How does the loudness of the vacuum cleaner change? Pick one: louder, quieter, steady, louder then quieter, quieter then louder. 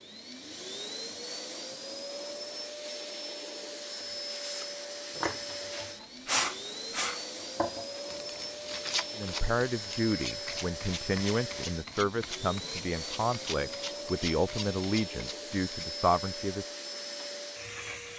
steady.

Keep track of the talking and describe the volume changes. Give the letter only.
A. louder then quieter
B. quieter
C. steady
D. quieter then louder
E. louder
C.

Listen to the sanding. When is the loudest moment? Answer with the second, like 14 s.
6 s.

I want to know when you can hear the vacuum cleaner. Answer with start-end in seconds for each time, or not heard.
0.0-18.1.